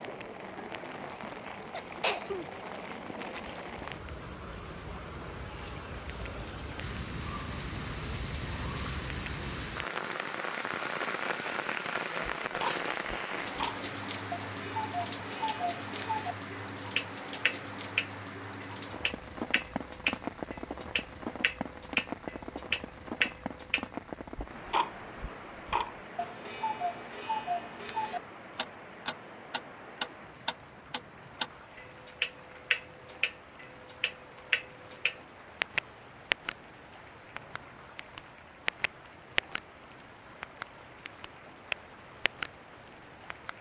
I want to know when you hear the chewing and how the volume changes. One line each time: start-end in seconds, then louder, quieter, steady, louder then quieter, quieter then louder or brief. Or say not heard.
not heard.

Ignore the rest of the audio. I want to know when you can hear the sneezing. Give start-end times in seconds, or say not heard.
1.7-2.5.